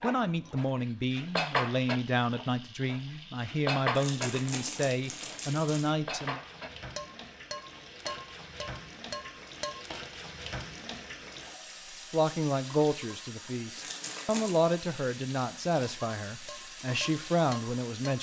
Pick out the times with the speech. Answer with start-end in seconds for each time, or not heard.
0.0-6.4, 12.1-18.1.